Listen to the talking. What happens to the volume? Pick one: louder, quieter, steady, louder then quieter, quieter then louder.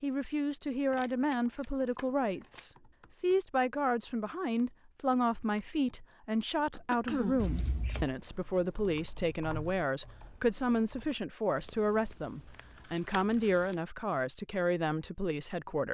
steady.